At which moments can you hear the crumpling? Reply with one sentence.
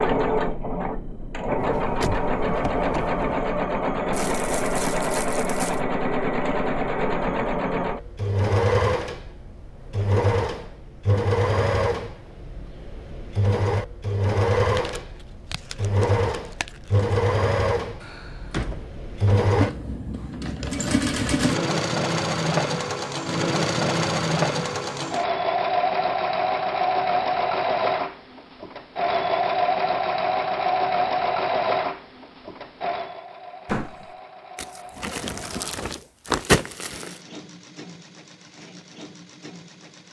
You can hear the crumpling from 4.1 to 5.8 s, from 14.6 to 17.1 s and from 34.5 to 37.2 s.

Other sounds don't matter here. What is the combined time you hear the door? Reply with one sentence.
The door can be heard for 4 seconds in total.